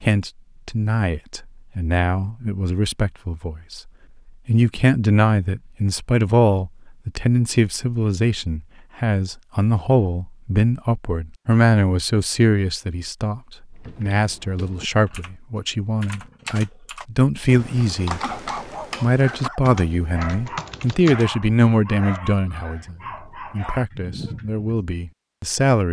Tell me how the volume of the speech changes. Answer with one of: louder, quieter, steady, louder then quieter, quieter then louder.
steady.